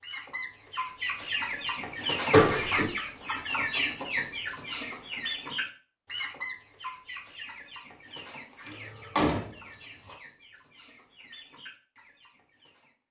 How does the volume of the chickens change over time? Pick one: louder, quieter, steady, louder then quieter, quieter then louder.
quieter.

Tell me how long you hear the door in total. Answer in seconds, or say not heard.
2 s.